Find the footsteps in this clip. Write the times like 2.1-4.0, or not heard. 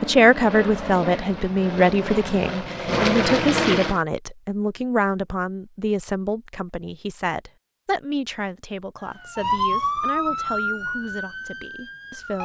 not heard.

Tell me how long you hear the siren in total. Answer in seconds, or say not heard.
3 s.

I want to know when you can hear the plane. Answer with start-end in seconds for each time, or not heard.
0.0-4.0.